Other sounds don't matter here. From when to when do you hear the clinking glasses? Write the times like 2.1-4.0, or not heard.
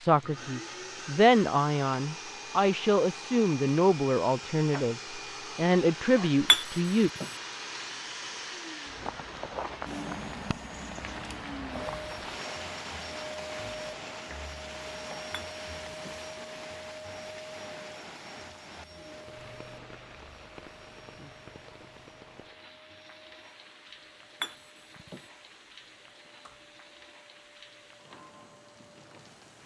6.5-7.2, 15.3-16.1, 24.4-25.2.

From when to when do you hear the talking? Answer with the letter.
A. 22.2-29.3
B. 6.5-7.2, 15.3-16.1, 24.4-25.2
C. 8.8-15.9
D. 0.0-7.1
D.